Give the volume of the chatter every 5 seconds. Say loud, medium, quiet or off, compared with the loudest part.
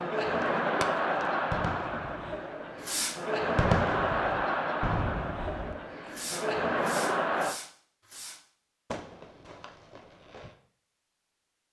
loud, loud, off.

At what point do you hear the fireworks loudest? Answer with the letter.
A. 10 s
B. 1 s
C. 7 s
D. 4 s
D.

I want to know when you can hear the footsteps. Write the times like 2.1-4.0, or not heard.
not heard.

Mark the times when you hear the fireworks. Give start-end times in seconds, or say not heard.
0.4-10.6.